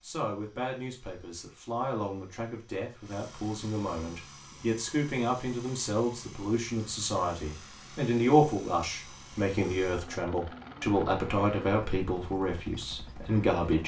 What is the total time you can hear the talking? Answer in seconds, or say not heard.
14 s.